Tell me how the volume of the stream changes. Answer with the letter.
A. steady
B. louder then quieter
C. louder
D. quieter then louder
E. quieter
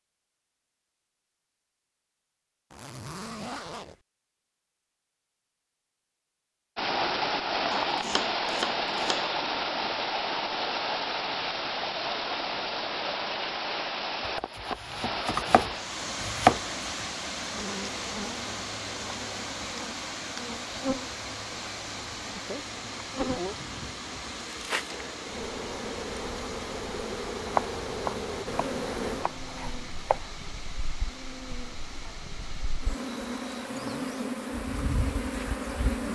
E.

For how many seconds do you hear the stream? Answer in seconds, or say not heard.
29 s.